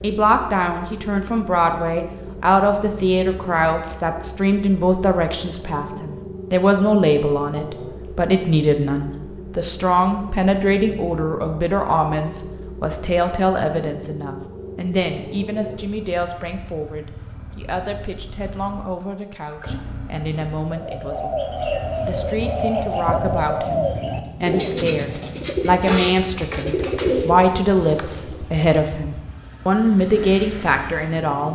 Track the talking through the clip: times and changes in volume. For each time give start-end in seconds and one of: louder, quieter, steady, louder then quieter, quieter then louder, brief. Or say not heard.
0.0-31.5 quieter then louder.